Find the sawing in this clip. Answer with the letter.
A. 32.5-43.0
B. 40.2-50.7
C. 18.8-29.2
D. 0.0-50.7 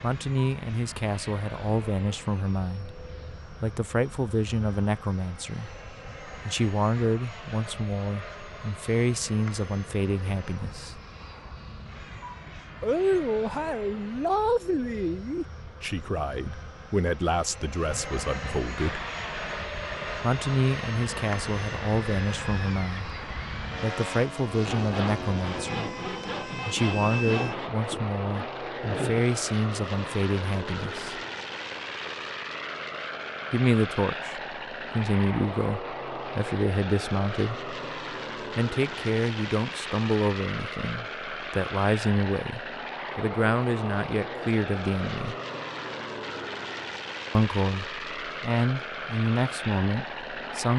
C.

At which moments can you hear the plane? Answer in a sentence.
You can hear the plane from 0.0 to 50.7 s.